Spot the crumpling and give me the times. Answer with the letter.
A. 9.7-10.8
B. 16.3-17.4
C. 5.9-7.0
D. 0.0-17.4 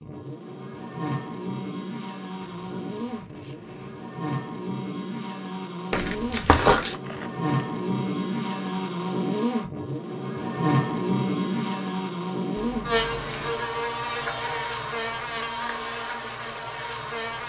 C.